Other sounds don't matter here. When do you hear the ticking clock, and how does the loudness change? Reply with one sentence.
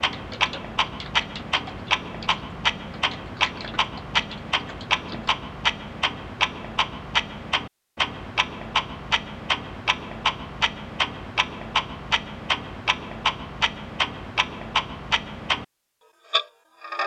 The ticking clock can be heard from 0.0 to 15.7 s, at a steady volume; and briefly from 16.3 to 17.0 s.